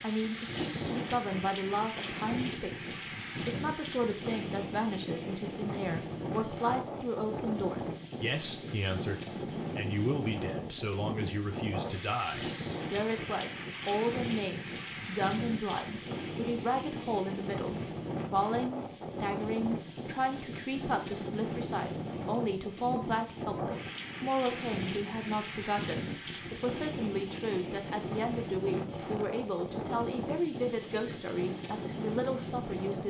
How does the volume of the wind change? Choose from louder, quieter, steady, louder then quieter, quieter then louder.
steady.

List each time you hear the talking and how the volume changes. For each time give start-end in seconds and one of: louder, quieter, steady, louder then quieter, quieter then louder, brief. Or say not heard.
0.0-33.0 steady.